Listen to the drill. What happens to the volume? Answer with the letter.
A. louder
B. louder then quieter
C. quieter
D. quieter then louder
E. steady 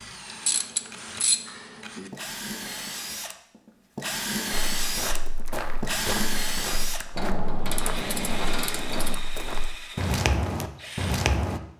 B.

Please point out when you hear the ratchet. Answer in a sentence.
You can hear the ratchet from 0.3 to 2.1 s and from 7.2 to 9.2 s.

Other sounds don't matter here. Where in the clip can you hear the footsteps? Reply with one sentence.
You can hear the footsteps from 4.5 to 11.6 s.